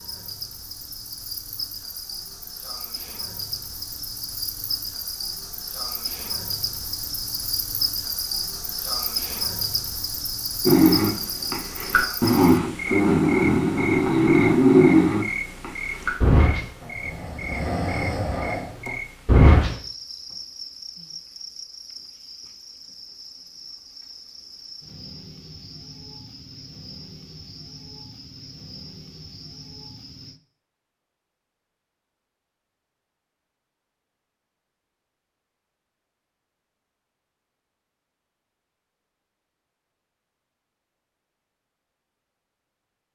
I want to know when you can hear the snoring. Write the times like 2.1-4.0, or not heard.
10.7-19.8.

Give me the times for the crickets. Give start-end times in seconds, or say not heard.
0.0-30.4.